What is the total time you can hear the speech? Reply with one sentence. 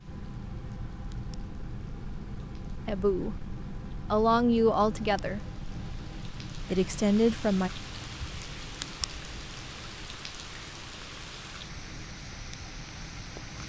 You can hear the speech for 4 seconds altogether.